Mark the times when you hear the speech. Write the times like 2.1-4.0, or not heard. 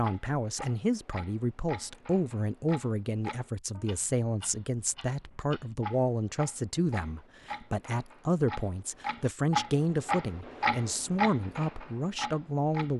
0.0-12.9.